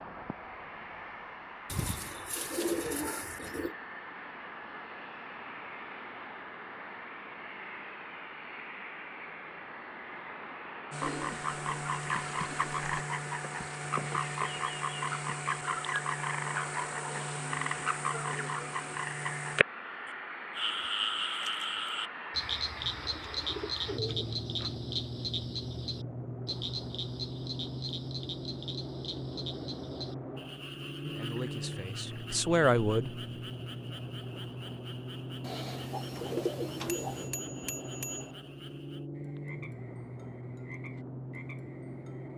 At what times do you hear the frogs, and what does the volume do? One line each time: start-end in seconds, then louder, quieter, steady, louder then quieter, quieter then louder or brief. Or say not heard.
10.9-42.3 quieter.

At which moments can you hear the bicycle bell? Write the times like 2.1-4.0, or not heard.
36.9-38.3.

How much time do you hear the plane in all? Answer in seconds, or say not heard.
42 s.